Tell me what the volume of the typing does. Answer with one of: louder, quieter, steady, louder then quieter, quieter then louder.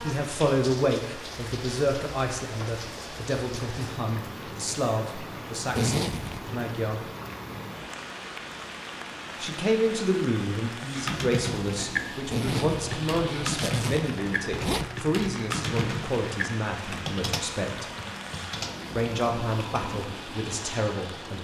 quieter.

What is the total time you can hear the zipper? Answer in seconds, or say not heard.
3 s.